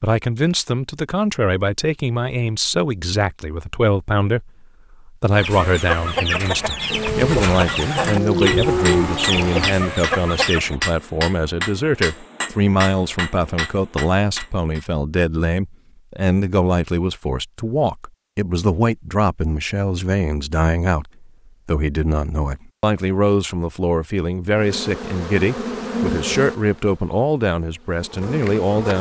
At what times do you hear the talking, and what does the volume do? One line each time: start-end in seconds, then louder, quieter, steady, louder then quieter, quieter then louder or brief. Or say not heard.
0.0-28.9 steady.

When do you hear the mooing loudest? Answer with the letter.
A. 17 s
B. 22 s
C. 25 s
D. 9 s
D.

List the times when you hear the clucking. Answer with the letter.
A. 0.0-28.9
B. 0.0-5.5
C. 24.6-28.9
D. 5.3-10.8
D.